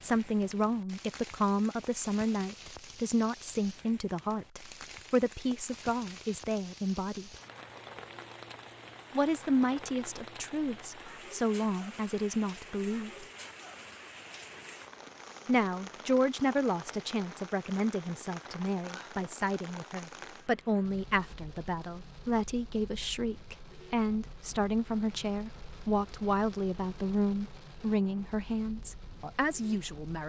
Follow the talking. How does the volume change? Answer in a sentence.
The loudness of the talking stays about the same.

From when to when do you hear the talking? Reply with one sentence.
You can hear the talking from 0.0 to 7.3 s, from 9.1 to 13.2 s and from 15.4 to 30.2 s.